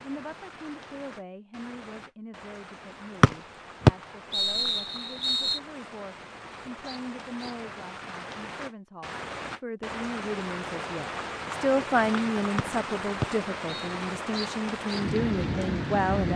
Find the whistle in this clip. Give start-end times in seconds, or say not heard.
3.2-5.6, 12.6-13.9.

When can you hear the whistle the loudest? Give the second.
4 s.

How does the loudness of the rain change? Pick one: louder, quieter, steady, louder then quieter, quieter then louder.
louder.